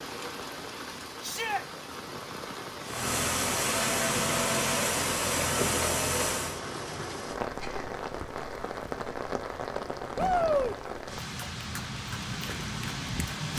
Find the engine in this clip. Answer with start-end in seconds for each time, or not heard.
2.9-6.6.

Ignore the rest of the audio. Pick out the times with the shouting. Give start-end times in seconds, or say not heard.
1.2-1.6, 10.2-10.8.